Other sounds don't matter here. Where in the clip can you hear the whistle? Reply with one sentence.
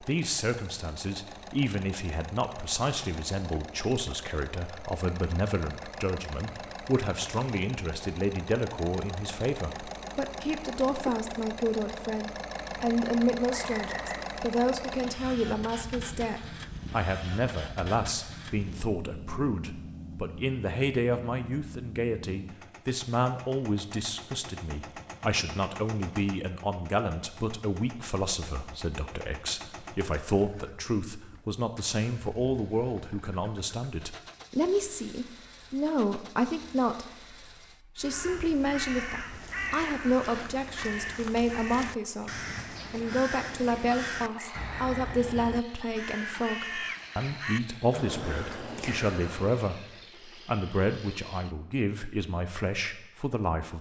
The whistle can be heard from 13.5 to 14.2 s and from 44.3 to 45.2 s.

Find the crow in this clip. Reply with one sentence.
You can hear the crow from 38.0 to 49.6 s.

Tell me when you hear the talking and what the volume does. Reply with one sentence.
The talking can be heard from 0.0 to 37.0 s, at a steady volume; and from 38.0 to 53.7 s, at a steady volume.